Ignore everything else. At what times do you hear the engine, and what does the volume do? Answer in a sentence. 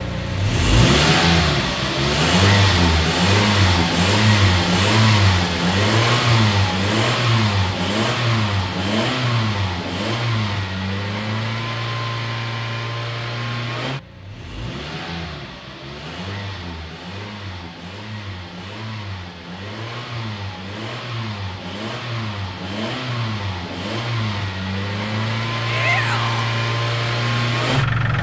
You can hear the engine from 0.0 to 28.1 s, getting quieter then louder.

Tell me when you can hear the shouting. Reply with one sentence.
You can hear the shouting from 25.6 to 26.5 s.